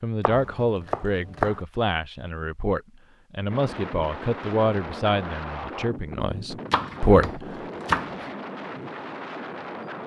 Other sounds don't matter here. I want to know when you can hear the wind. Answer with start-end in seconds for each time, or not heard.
3.5-10.0.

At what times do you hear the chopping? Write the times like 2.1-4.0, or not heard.
0.2-1.6, 6.7-8.2.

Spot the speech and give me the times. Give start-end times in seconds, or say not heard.
0.0-7.2.